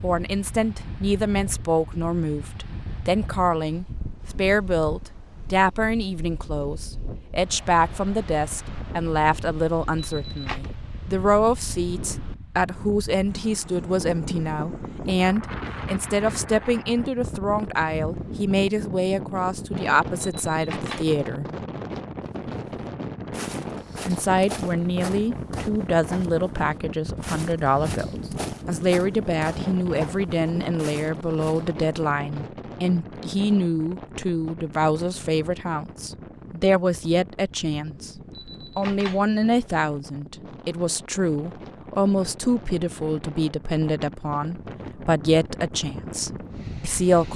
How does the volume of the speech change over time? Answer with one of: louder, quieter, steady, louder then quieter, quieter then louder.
steady.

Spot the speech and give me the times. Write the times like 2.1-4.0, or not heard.
0.0-21.4, 24.1-38.1, 38.8-47.3.